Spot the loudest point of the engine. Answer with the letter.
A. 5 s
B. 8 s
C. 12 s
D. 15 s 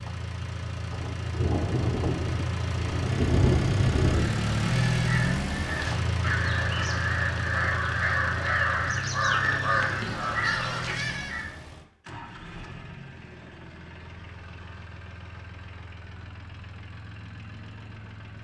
A.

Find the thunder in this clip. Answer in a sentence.
The thunder can be heard from 0.9 to 4.5 s.